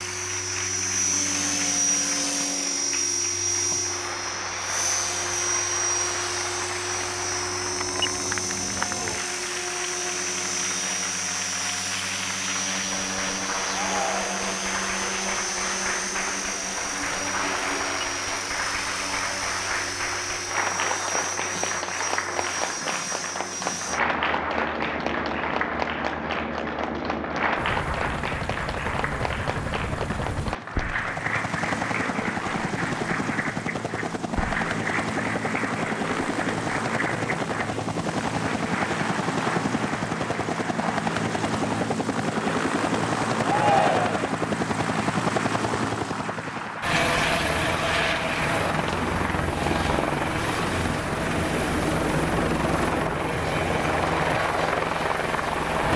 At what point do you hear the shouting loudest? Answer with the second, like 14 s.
44 s.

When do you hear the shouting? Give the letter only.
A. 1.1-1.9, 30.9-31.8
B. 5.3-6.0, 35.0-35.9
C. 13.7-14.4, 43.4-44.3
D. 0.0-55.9
C.